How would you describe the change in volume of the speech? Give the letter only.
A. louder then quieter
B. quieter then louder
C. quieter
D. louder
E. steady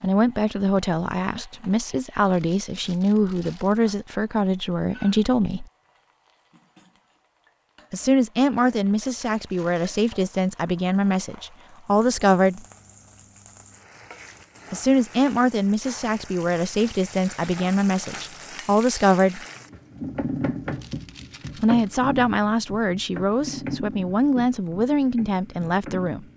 E.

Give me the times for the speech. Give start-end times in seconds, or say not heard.
0.0-5.7, 7.9-12.6, 14.7-19.4, 21.6-26.2.